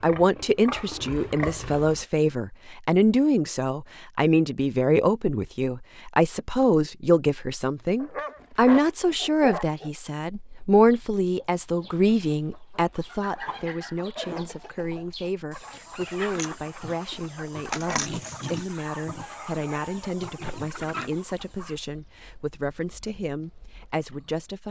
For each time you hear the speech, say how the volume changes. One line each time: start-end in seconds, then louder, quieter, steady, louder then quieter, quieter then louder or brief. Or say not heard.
0.0-24.6 quieter.